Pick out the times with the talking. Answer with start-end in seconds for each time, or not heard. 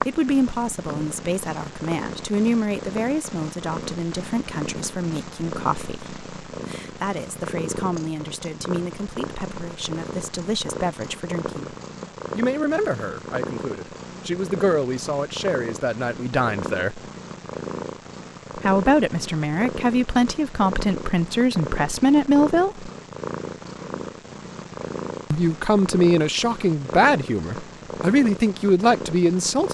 0.0-11.8, 12.3-17.0, 18.6-22.9, 25.3-29.7.